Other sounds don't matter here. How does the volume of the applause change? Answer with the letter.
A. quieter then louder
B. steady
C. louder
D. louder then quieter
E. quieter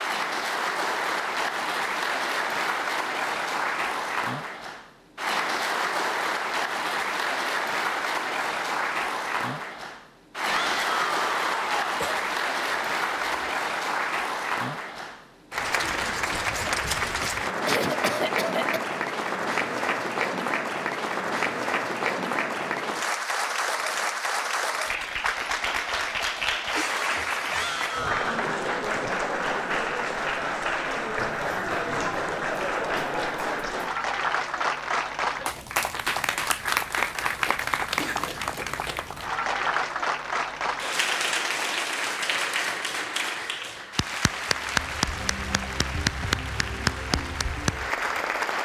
B.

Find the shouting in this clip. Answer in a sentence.
The shouting can be heard from 10.4 to 12.1 s and from 27.5 to 28.4 s.